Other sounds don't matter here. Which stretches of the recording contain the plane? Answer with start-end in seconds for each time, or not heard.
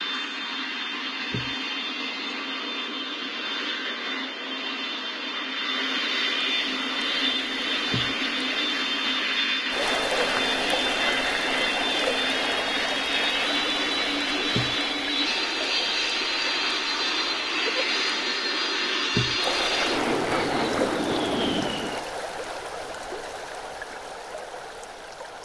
0.0-22.1.